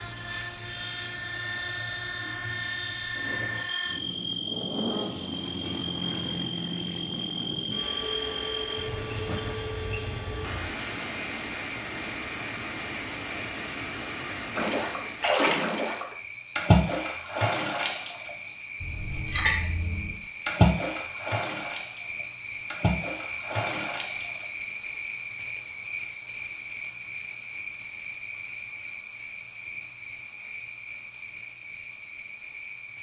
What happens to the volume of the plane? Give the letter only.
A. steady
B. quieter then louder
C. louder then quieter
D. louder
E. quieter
A.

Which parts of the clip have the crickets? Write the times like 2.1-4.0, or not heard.
0.0-32.9.